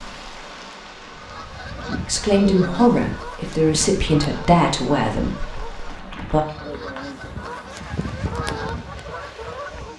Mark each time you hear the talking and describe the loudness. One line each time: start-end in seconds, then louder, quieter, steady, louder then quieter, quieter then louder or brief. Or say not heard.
2.0-6.5 quieter.